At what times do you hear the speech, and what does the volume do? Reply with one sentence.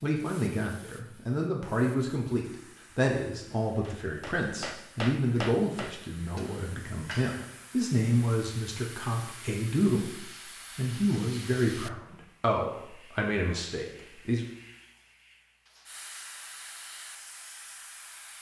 The speech can be heard from 0.0 to 14.4 s, at a steady volume.